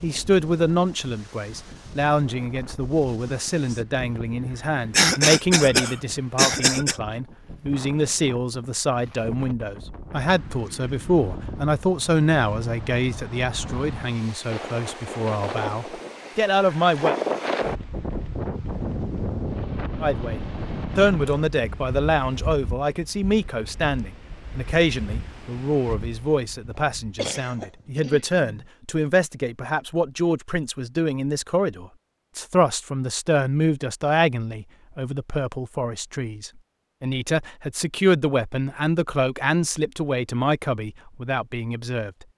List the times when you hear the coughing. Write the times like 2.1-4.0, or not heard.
4.9-7.0, 27.1-28.6.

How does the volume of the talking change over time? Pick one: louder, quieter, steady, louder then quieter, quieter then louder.
steady.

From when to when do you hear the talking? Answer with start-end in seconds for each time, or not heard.
0.0-17.1, 20.0-42.2.